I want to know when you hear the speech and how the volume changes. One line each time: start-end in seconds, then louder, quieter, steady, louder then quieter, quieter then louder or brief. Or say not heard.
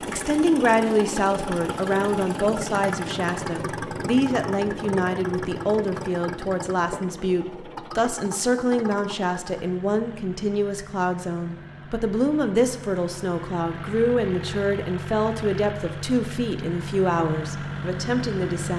0.1-18.7 steady.